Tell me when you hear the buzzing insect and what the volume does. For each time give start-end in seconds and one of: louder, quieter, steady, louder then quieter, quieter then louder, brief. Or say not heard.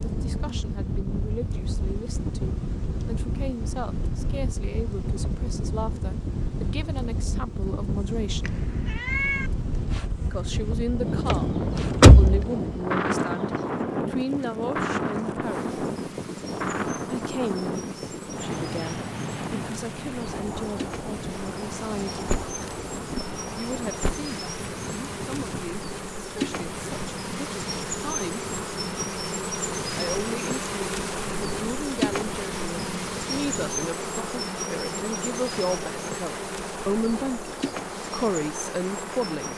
0.0-39.5 louder.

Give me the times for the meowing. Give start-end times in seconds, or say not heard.
8.4-9.5.